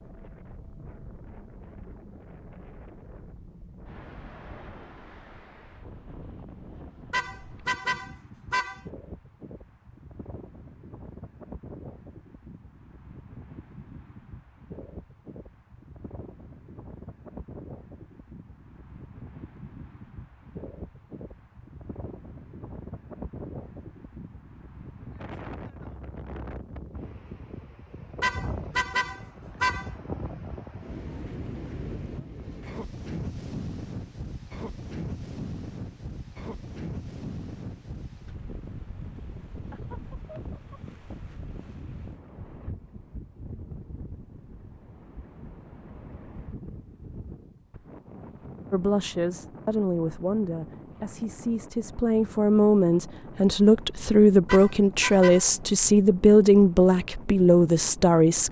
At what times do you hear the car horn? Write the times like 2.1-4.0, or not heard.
7.1-8.8, 28.2-29.9, 54.5-55.5.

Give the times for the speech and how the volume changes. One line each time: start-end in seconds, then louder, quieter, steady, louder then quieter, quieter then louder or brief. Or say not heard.
48.7-58.4 louder.